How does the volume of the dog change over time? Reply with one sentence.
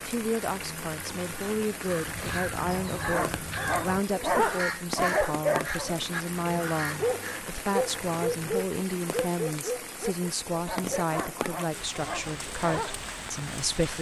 The loudness of the dog goes down.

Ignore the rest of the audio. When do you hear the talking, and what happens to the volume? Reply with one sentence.
You can hear the talking from 0.1 to 13.9 s, at a steady volume.